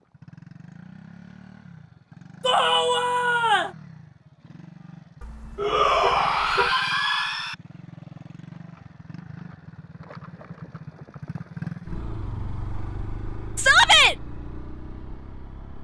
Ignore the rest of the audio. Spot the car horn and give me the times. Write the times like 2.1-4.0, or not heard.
5.2-6.7.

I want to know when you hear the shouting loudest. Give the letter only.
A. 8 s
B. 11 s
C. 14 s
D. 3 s
C.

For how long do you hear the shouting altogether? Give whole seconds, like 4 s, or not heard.
4 s.